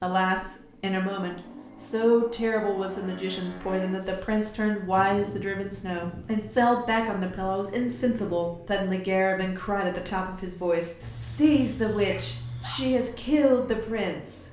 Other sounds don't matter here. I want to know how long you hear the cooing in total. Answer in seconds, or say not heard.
not heard.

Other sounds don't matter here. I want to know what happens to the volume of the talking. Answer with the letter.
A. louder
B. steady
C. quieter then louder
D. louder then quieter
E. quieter
B.